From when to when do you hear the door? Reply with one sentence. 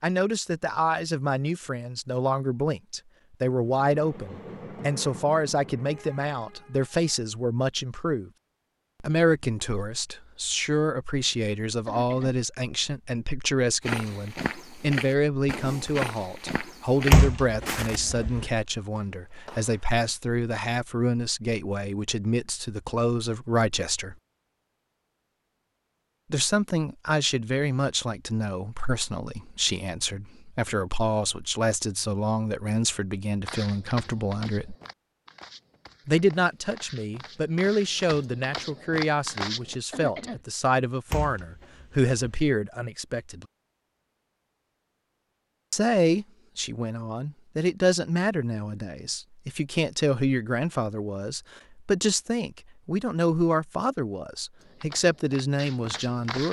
You can hear the door from 17.1 to 18.4 s and from 41.1 to 42.4 s.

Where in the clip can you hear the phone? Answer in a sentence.
The phone can't be heard in this clip.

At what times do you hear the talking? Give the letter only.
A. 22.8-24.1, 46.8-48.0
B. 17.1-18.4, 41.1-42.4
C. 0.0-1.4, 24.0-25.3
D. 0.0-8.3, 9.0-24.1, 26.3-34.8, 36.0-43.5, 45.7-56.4
D.